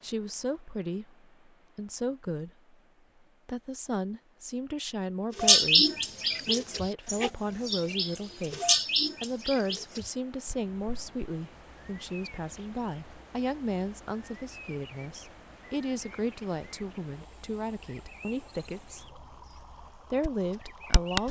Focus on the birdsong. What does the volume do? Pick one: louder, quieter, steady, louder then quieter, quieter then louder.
quieter then louder.